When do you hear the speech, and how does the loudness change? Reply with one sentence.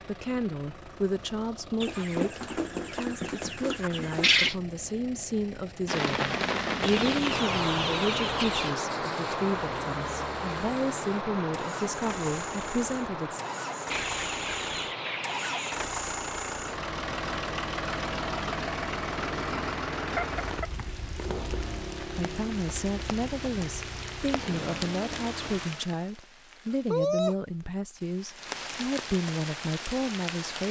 You can hear the speech from 0.1 to 13.4 s, at a steady volume; and from 22.1 to 30.6 s, at a steady volume.